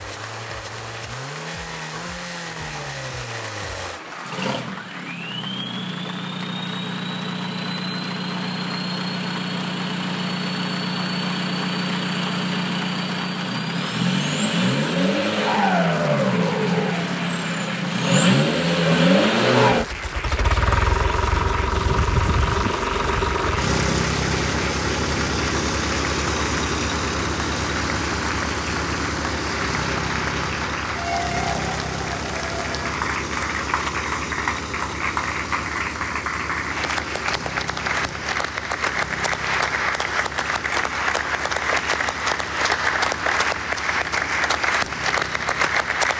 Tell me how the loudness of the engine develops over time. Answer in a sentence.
The volume of the engine goes up, then down.